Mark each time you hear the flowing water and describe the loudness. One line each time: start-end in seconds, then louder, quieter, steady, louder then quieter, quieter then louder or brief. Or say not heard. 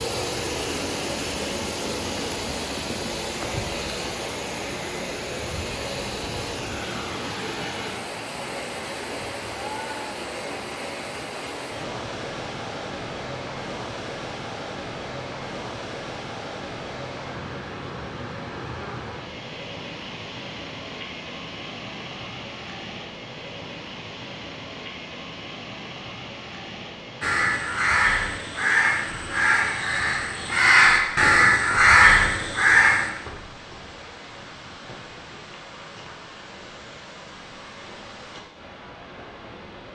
0.0-39.9 quieter.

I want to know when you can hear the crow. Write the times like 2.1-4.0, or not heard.
27.2-33.1.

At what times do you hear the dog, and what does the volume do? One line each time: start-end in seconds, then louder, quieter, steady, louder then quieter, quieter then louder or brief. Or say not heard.
not heard.